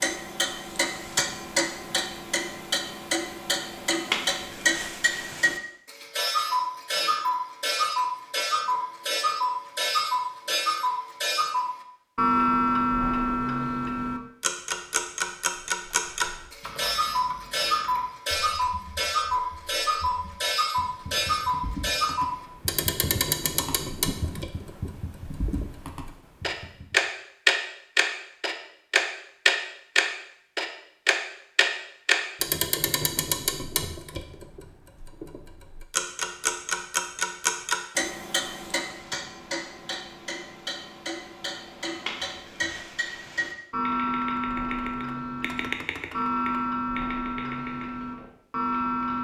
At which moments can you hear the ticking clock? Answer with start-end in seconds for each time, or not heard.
0.0-49.1.